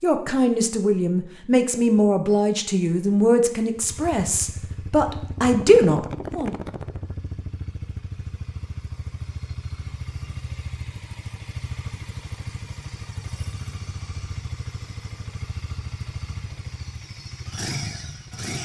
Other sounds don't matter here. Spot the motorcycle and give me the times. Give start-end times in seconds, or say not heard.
3.8-18.6.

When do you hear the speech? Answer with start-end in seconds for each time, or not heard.
0.0-6.5.